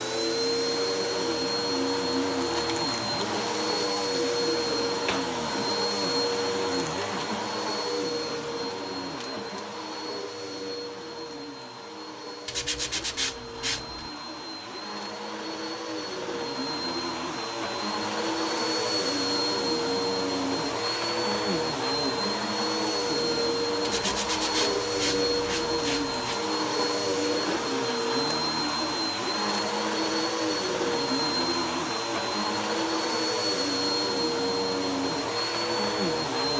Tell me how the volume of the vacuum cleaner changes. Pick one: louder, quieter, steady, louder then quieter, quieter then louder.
quieter then louder.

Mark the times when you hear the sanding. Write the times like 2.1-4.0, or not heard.
12.4-14.1, 23.8-26.4.